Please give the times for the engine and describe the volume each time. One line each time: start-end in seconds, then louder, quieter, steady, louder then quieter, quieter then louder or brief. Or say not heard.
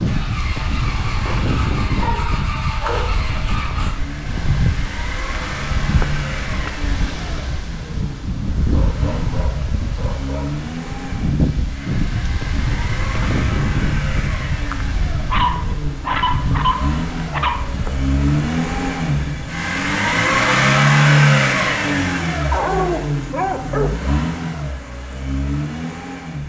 0.0-26.4 louder.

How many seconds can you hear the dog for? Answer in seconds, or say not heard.
8 s.